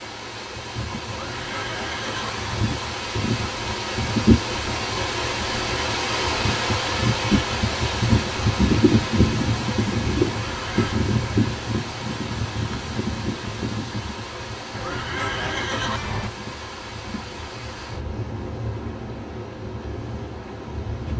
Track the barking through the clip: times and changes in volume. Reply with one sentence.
The barking can't be heard in this clip.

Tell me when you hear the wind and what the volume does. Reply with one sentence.
You can hear the wind from 0.0 to 21.1 s, getting quieter.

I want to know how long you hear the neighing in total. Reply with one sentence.
You can hear the neighing for 4 seconds altogether.